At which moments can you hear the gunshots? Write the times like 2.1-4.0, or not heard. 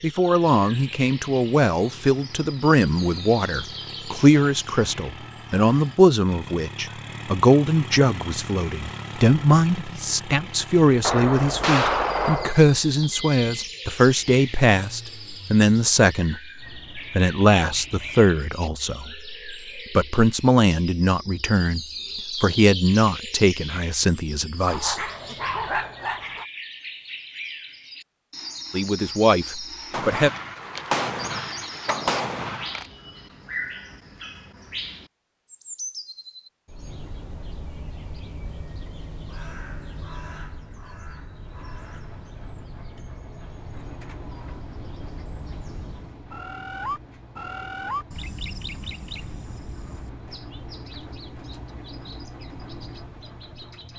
11.0-12.6, 29.9-32.9.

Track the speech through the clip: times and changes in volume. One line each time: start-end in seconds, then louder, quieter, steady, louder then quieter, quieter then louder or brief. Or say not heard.
0.0-21.8 steady
22.4-25.0 brief
28.7-30.3 brief.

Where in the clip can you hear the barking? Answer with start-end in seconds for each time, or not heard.
24.6-26.4.